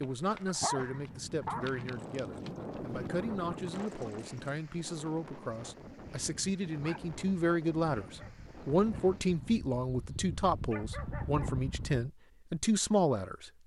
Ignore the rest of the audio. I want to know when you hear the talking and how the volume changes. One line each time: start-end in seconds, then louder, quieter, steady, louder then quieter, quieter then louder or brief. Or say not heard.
0.0-13.5 louder.